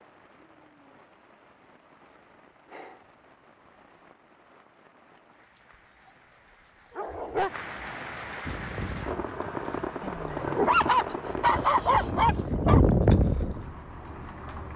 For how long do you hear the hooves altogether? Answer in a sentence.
You can hear the hooves for 5 seconds altogether.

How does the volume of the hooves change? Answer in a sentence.
The loudness of the hooves goes down, then up.